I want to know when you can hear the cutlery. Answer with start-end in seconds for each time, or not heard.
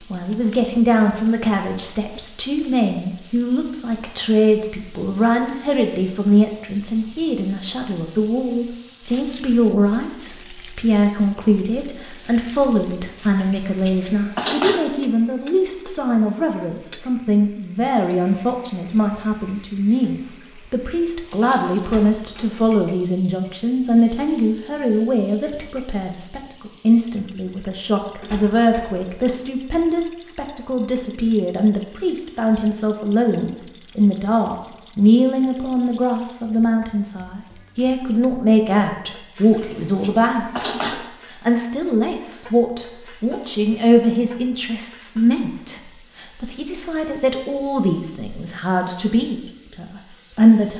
13.2-14.8, 20.2-21.8, 39.4-41.0.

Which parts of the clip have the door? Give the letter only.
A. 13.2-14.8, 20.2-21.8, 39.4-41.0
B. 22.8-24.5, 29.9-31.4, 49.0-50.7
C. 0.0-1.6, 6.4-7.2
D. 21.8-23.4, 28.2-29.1
D.